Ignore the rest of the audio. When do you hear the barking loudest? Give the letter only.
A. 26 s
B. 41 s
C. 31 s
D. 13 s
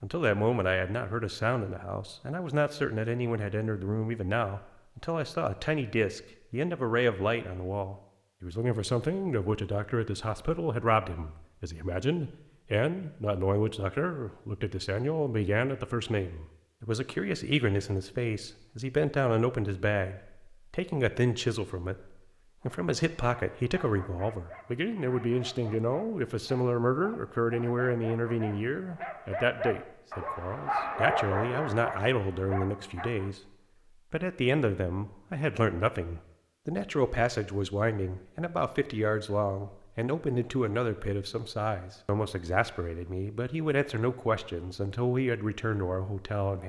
C.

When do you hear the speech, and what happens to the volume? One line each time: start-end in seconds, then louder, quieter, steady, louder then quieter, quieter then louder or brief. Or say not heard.
0.0-46.6 steady.